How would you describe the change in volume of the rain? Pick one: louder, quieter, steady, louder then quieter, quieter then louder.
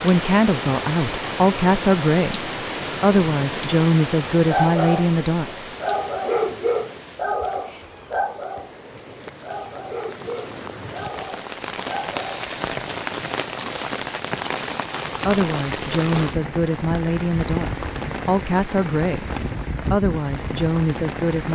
quieter then louder.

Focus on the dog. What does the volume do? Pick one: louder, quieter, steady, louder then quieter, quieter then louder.
quieter.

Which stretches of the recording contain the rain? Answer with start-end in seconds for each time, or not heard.
0.0-21.4.